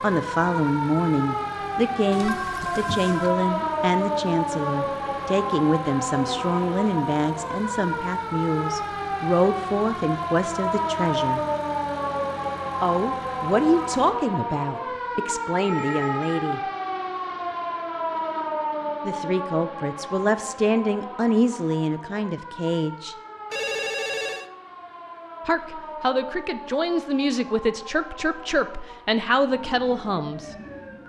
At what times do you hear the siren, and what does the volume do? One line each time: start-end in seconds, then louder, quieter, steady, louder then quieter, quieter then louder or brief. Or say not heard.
0.0-31.0 quieter.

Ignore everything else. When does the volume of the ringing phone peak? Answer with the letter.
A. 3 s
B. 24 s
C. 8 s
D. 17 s
B.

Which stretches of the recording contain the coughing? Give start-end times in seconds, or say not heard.
not heard.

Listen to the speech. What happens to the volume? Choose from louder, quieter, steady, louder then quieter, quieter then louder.
steady.